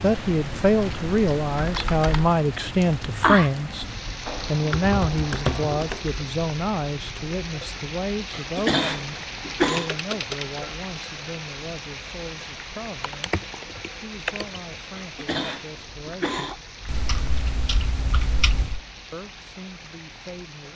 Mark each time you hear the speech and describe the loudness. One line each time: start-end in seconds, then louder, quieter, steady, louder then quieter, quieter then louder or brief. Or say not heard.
0.0-16.4 quieter
19.1-20.7 brief.